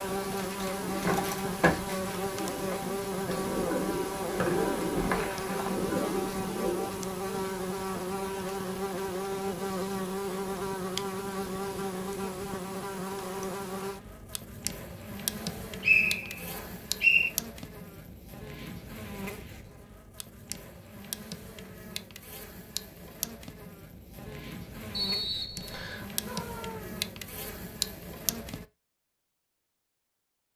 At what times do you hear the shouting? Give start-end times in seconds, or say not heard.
26.2-27.1.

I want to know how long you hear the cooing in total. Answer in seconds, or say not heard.
7 s.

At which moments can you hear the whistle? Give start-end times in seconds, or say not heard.
4.4-5.8, 15.4-17.3, 24.9-26.1.